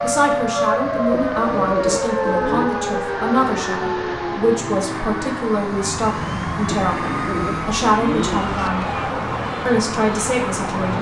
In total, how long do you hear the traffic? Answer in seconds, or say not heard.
11 s.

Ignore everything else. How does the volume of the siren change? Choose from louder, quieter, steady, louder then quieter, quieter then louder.
quieter.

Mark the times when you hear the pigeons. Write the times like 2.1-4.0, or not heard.
1.1-2.7, 6.8-8.7.